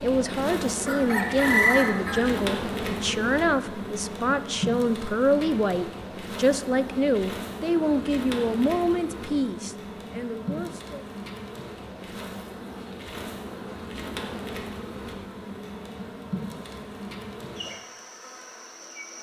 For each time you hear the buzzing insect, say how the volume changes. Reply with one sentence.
The buzzing insect can be heard from 0.0 to 19.1 s, getting quieter.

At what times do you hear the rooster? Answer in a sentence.
You can hear the rooster from 0.8 to 2.2 s.